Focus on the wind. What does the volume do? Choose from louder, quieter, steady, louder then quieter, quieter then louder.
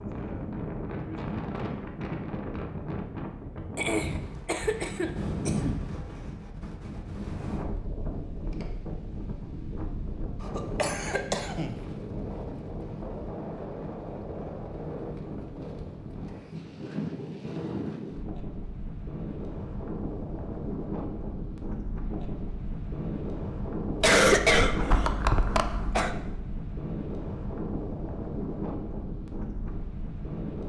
steady.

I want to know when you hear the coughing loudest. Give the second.
24 s.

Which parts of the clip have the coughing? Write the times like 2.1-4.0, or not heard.
3.8-5.8, 10.4-11.8, 24.0-26.1.